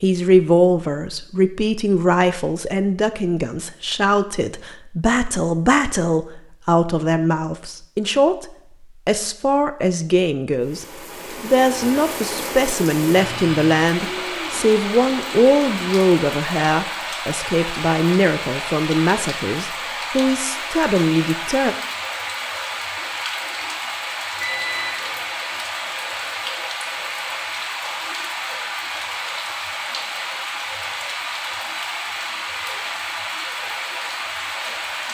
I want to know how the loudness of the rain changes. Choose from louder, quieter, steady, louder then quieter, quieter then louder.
steady.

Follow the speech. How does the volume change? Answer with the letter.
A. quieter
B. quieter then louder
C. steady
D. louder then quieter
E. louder
C.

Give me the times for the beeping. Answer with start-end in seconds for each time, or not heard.
13.2-13.7, 24.4-25.4.